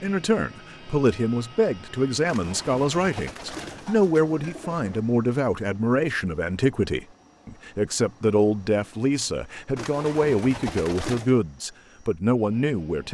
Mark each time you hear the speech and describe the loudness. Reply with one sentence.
The speech can be heard from 0.0 to 13.0 s, at a steady volume.